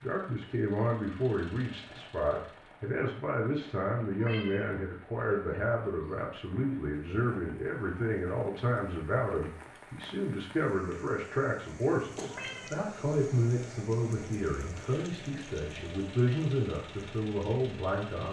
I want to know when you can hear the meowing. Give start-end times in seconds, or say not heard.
4.2-4.7, 12.3-12.8.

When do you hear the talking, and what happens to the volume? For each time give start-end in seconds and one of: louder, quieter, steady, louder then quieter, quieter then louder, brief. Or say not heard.
0.0-18.2 steady.